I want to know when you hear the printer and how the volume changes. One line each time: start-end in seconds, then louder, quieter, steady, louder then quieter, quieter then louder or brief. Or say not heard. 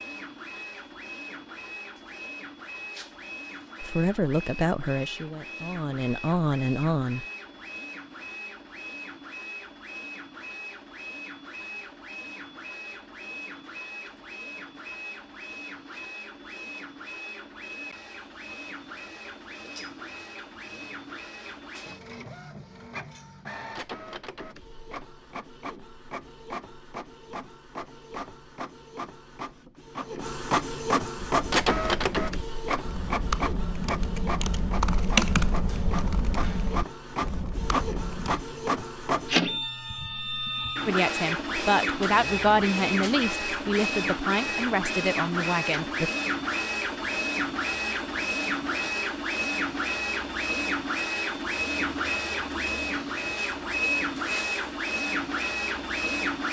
0.0-56.4 louder.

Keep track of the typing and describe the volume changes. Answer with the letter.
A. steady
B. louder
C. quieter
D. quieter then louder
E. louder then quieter
E.